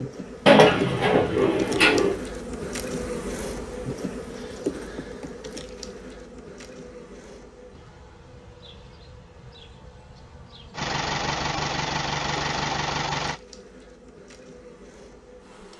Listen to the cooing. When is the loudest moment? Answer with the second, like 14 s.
1 s.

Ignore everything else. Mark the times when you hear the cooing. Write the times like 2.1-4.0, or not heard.
0.5-2.1.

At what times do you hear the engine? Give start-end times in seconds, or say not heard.
10.7-13.4.